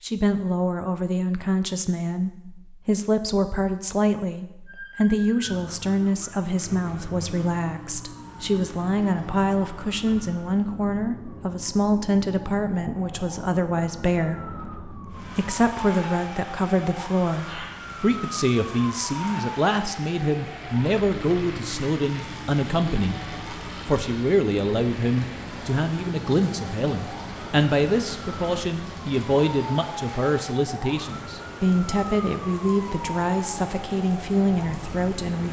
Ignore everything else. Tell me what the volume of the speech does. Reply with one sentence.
The volume of the speech stays about the same.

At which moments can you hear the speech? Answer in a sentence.
You can hear the speech from 0.0 to 23.2 s and from 23.9 to 35.4 s.